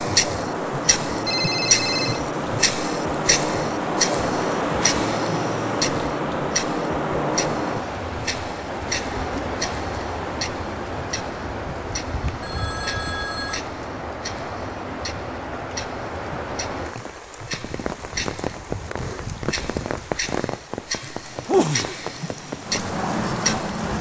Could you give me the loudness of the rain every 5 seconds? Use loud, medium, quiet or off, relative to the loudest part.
loud, loud, medium, medium, loud.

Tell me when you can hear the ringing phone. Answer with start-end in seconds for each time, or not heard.
1.2-2.2, 12.2-13.6.